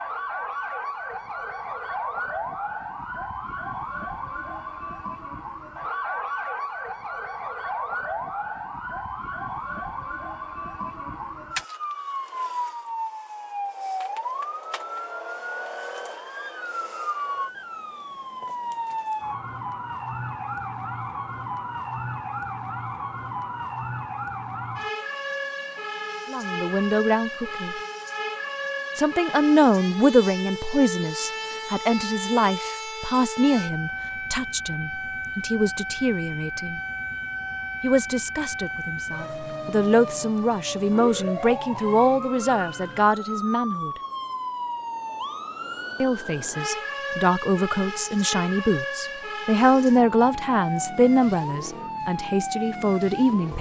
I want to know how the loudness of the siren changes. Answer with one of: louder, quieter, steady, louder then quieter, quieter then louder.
steady.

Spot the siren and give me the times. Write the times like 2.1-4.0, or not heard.
0.0-53.5.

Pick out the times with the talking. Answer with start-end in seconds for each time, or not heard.
26.3-27.8, 28.9-36.8, 37.8-43.9, 46.0-53.5.